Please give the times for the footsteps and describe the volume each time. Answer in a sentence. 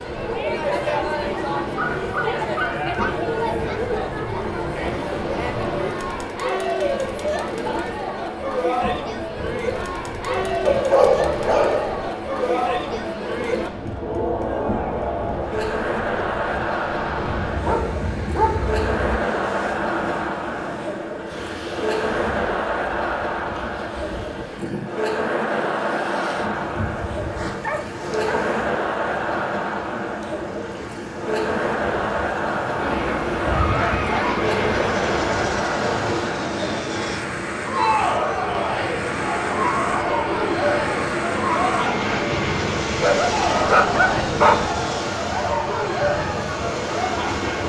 You can't hear the footsteps here.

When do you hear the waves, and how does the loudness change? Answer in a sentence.
The waves can be heard from 0.0 to 47.6 s, getting louder.